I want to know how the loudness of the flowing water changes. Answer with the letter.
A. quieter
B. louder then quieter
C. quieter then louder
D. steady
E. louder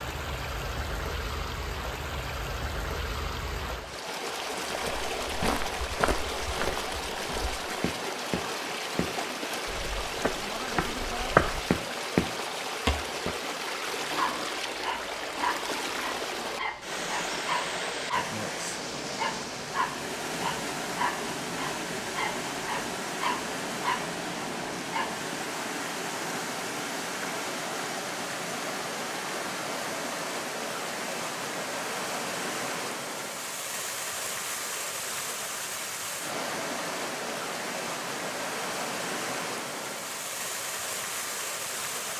D.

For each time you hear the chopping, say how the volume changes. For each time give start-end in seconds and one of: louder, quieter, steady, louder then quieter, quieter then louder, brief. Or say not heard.
not heard.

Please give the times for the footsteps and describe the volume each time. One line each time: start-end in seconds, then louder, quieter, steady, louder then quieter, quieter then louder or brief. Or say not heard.
4.8-13.3 quieter then louder.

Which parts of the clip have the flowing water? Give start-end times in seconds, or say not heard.
0.0-42.1.